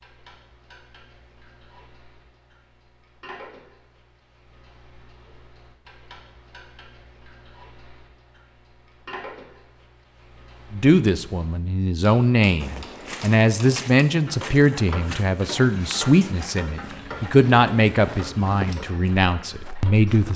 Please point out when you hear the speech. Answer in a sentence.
The speech can be heard from 10.7 to 20.3 s.